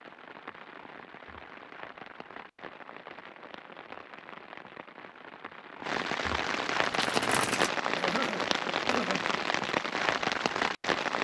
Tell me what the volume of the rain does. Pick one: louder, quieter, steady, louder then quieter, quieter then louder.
louder.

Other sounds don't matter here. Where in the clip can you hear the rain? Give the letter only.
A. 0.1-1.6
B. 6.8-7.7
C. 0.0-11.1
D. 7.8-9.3
C.